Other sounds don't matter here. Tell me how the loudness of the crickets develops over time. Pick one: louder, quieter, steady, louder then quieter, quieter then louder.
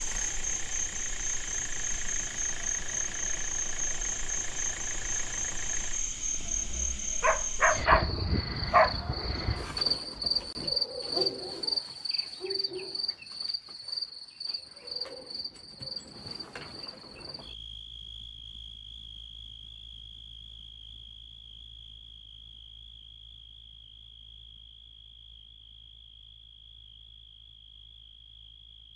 quieter.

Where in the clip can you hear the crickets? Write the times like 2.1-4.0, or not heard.
0.0-28.9.